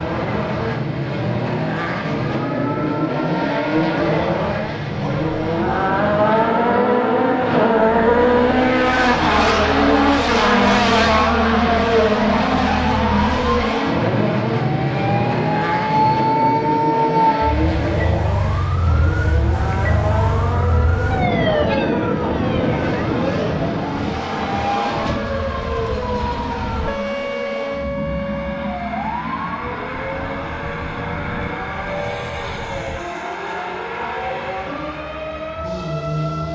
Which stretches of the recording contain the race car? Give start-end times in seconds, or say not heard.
0.0-36.5.